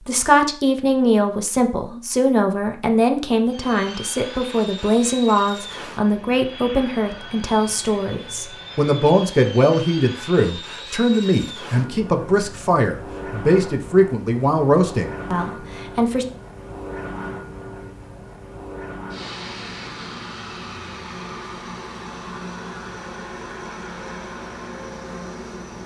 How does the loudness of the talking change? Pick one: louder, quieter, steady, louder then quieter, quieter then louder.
steady.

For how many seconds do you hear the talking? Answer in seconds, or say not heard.
16 s.